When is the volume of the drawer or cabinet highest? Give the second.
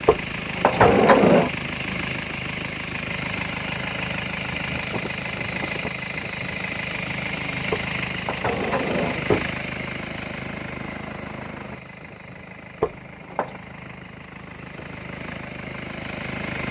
1 s.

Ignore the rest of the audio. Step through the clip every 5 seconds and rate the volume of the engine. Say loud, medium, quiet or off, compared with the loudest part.
loud, loud, medium, loud.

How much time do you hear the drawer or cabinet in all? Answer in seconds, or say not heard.
4 s.